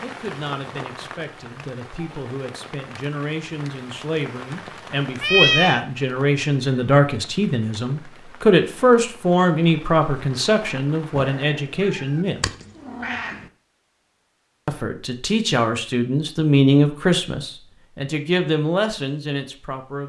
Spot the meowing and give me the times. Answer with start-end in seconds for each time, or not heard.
5.2-5.8, 11.2-13.4.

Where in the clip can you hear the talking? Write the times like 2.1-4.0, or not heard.
0.0-12.6, 14.7-20.0.